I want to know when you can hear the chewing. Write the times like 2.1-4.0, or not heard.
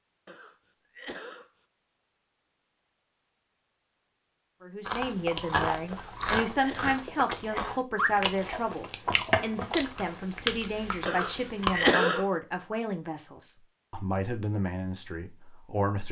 4.8-11.9.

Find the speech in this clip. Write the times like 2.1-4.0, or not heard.
4.6-16.0.